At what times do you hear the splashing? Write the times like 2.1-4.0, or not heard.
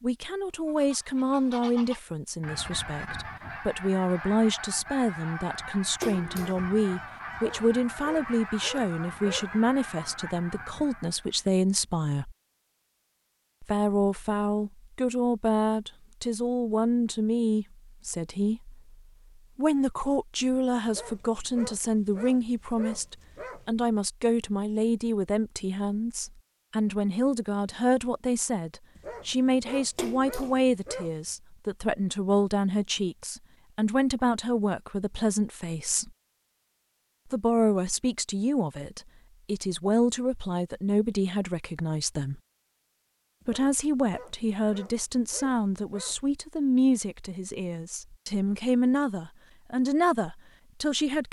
6.0-6.7, 29.9-30.6.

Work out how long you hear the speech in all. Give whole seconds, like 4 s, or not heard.
47 s.